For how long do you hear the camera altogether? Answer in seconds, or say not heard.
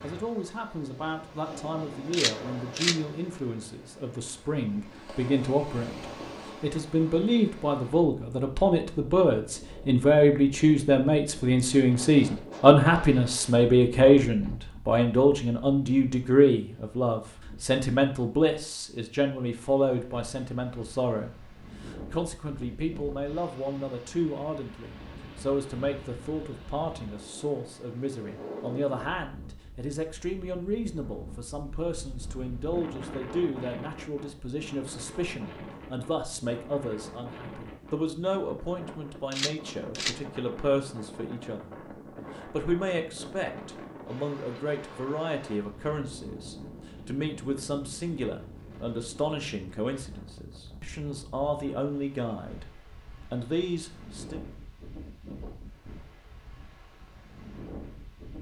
2 s.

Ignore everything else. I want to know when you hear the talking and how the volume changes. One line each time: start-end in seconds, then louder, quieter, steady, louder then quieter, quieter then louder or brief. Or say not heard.
0.0-41.8 louder then quieter
42.4-54.4 steady.